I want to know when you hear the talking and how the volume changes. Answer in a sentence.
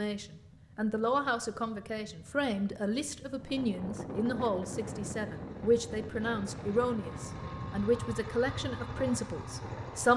The talking can be heard from 0.0 to 10.1 s, at a steady volume.